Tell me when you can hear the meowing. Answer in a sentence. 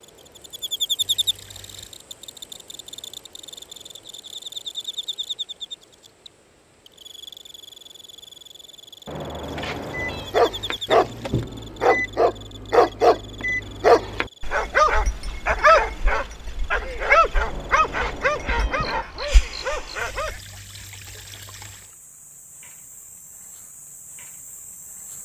You can hear the meowing from 9.1 to 10.3 s and from 17.4 to 19.1 s.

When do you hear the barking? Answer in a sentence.
The barking can be heard from 9.9 to 20.4 s.